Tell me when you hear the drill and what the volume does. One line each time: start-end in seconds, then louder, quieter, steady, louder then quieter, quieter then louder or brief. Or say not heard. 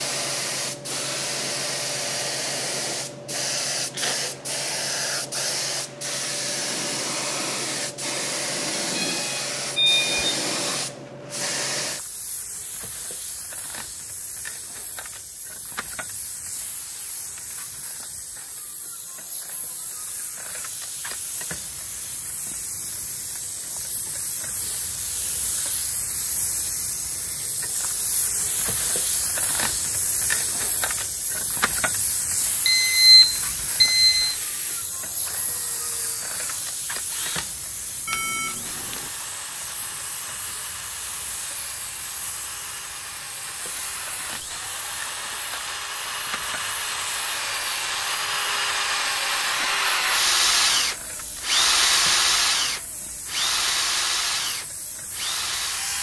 33.3-55.9 louder.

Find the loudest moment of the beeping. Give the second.
33 s.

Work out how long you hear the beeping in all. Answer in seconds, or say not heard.
4 s.